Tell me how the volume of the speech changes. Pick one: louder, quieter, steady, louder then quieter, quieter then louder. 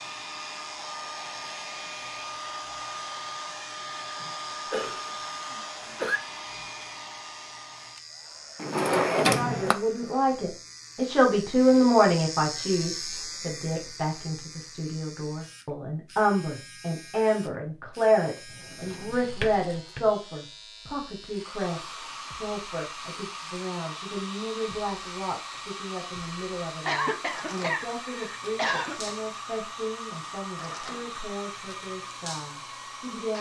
quieter.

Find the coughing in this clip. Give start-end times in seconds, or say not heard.
4.2-6.2, 26.9-29.1.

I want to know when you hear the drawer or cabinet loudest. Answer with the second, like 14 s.
9 s.